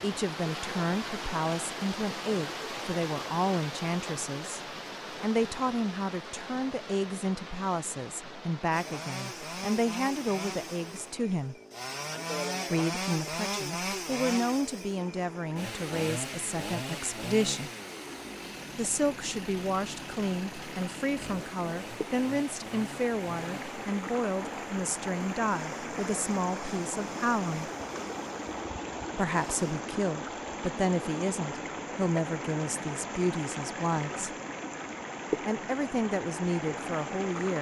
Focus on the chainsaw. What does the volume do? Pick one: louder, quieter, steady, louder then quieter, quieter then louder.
quieter.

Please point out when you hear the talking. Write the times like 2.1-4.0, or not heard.
0.0-4.6, 5.2-11.6, 12.7-17.7, 18.8-27.7, 29.1-34.3, 35.5-37.5.